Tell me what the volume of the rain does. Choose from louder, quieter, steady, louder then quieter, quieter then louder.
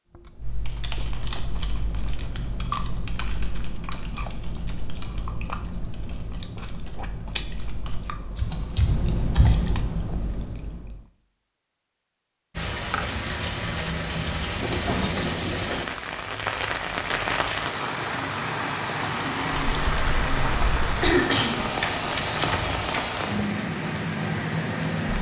steady.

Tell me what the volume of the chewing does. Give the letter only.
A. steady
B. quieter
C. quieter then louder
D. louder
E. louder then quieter
D.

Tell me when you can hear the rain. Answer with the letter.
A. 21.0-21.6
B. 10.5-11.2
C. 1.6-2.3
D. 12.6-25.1
D.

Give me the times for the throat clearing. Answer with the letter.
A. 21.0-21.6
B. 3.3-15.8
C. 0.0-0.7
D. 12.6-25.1
A.